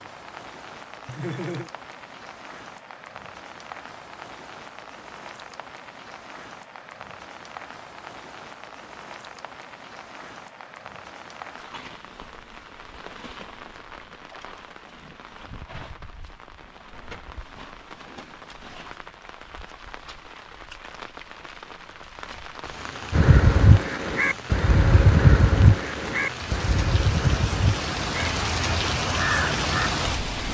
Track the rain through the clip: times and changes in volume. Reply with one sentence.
You can hear the rain from 0.0 to 30.5 s, getting louder.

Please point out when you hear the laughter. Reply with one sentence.
You can hear the laughter from 1.1 to 1.7 s.